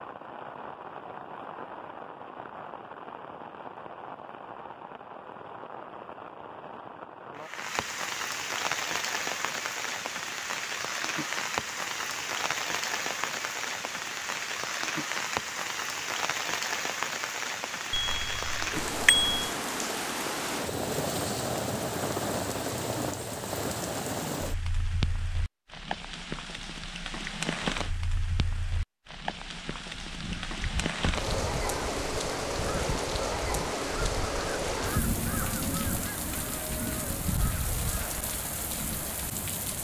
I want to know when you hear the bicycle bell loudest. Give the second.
19 s.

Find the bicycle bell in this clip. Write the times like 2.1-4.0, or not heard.
17.9-19.5.